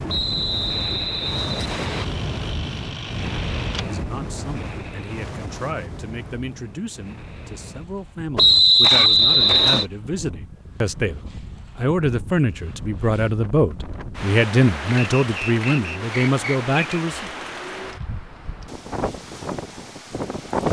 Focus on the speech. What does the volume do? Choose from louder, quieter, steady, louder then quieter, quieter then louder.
louder.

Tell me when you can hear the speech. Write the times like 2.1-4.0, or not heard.
3.8-17.3.